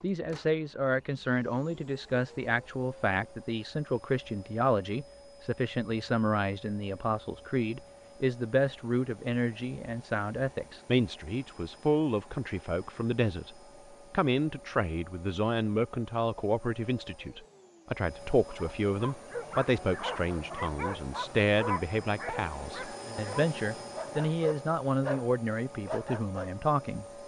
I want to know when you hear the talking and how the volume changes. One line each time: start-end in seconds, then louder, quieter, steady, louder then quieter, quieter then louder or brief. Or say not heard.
0.0-27.1 steady.